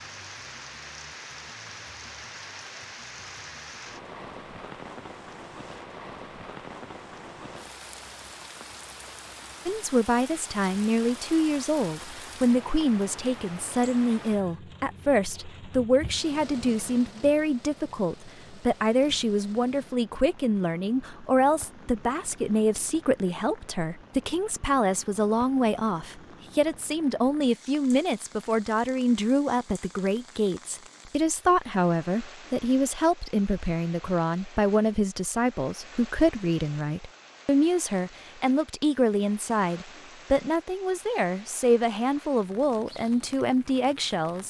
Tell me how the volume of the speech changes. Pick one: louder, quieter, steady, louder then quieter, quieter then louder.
steady.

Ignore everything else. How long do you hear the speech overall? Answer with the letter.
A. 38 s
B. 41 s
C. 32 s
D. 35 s
D.